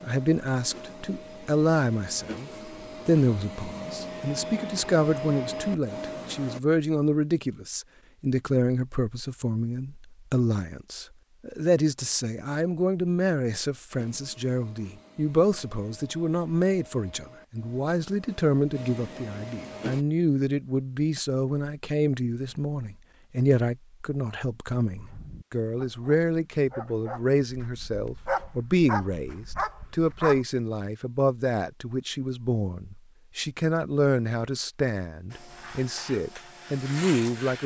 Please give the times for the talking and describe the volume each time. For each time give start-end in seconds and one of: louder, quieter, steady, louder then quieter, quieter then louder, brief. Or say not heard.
0.0-37.6 steady.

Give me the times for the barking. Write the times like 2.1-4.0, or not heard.
25.0-30.4.